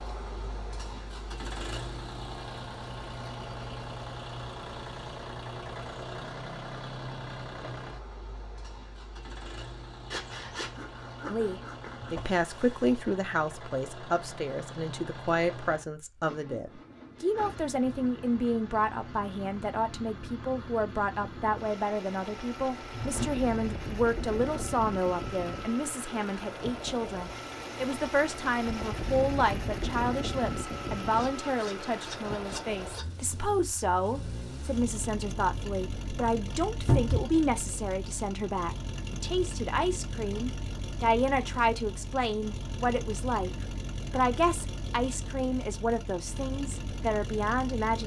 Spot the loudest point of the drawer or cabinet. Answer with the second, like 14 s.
37 s.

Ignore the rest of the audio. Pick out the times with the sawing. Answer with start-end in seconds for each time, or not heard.
10.1-12.2, 31.1-33.0.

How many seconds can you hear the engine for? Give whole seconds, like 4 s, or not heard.
48 s.